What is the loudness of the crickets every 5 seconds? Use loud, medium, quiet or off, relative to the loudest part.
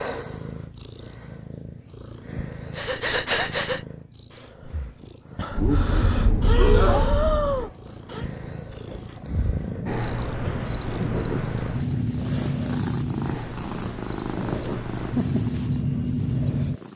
off, loud, loud, loud.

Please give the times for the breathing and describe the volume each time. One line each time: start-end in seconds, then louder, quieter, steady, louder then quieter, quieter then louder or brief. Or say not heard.
2.8-8.2 quieter then louder.